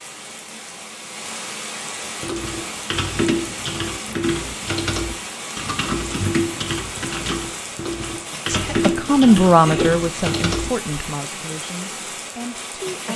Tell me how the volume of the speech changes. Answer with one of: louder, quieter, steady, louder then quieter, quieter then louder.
quieter.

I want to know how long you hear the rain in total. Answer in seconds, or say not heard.
13 s.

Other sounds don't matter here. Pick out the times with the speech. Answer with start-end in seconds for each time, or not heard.
8.7-13.1.